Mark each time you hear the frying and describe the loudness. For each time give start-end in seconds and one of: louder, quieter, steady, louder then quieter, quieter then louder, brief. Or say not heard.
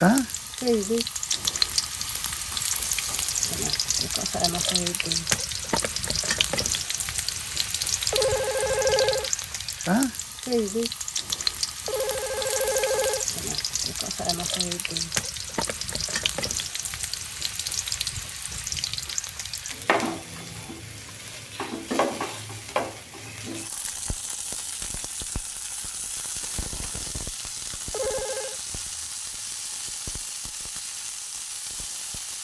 0.0-32.4 quieter.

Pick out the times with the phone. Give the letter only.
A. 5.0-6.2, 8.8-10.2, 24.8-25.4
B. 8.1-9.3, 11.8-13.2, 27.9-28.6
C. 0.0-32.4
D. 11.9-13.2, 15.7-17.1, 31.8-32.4
B.